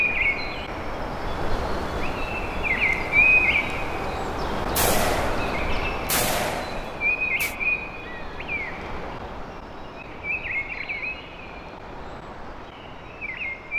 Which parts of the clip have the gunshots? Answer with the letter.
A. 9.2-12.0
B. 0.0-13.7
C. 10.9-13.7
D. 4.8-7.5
D.